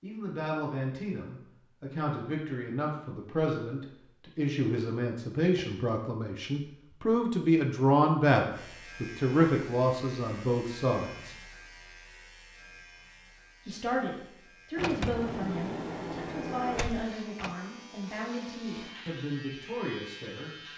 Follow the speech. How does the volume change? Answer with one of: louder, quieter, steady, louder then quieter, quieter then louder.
louder then quieter.